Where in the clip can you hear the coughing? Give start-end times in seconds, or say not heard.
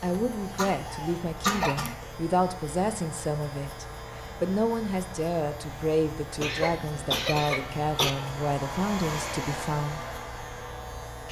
0.6-2.0, 6.4-8.1.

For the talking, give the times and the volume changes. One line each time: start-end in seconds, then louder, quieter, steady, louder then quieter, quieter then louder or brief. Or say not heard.
0.0-10.0 steady.